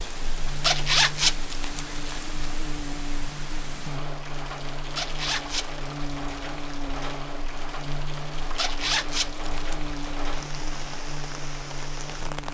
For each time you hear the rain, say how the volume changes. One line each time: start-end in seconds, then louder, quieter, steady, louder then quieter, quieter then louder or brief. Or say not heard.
0.0-12.4 steady.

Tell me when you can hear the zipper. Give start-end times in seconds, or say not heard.
0.5-2.5, 4.8-5.8, 8.4-10.2.